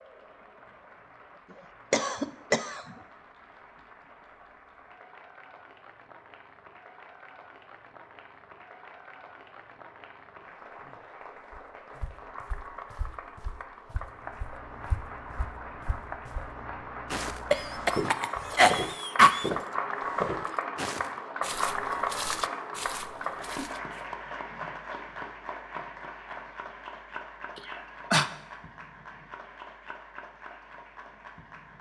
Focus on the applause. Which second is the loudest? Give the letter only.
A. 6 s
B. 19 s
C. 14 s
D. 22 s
D.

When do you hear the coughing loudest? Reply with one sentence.
The volume of the coughing peaks at 19 seconds.